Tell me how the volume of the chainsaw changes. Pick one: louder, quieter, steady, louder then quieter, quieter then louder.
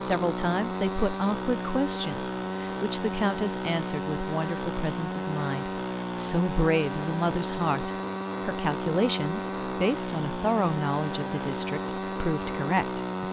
steady.